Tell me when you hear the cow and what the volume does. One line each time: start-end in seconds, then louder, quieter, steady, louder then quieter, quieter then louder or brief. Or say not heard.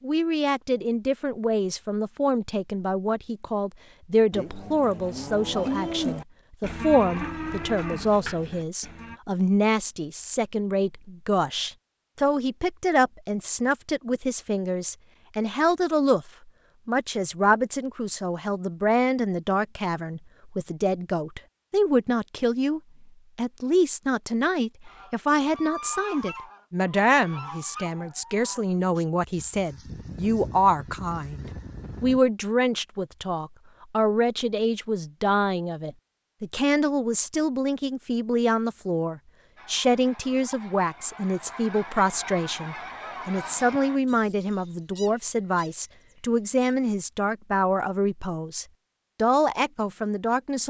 4.3-9.2 louder then quieter.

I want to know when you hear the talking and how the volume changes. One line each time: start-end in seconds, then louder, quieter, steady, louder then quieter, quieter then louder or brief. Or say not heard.
0.0-50.6 steady.